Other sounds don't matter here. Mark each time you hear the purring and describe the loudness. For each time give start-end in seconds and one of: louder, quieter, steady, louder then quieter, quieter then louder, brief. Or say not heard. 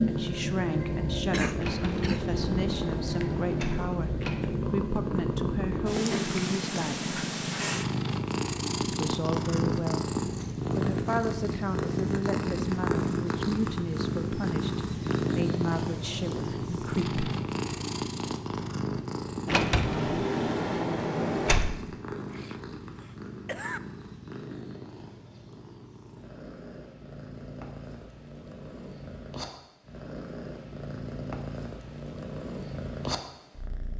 0.0-33.9 quieter.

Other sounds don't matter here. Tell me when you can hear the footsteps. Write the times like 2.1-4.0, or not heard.
not heard.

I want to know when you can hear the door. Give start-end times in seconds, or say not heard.
1.6-4.4, 19.4-21.8.